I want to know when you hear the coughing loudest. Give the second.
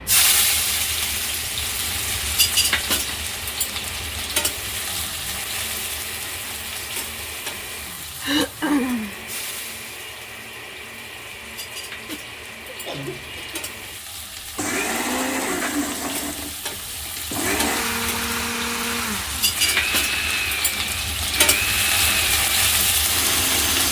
9 s.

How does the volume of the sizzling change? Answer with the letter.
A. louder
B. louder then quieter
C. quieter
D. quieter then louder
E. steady
D.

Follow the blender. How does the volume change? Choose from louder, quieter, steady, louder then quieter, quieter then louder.
louder.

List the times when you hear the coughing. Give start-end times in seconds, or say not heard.
8.2-9.2, 12.1-13.9.